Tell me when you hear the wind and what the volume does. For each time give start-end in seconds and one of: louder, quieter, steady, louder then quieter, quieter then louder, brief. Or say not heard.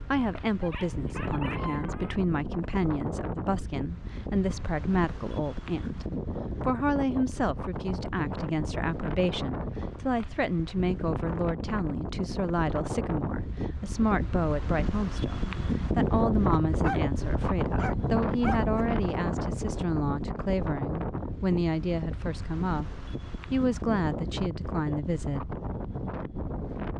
0.0-26.9 louder then quieter.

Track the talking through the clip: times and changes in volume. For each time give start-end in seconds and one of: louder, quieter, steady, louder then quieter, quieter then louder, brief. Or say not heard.
0.0-25.6 steady.